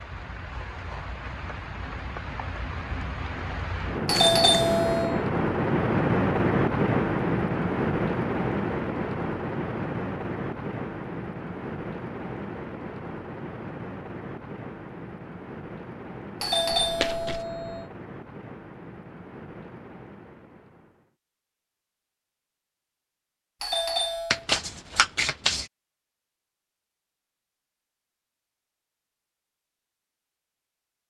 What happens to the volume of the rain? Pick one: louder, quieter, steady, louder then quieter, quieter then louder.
louder then quieter.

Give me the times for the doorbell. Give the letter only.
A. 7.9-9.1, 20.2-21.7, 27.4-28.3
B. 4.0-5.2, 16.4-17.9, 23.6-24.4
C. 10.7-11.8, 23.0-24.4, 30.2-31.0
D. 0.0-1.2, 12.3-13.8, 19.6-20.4
B.